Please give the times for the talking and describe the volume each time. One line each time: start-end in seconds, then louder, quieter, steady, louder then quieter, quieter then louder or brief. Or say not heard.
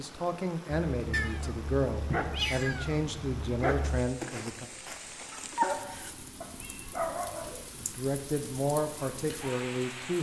0.0-4.7 steady
7.8-10.1 brief.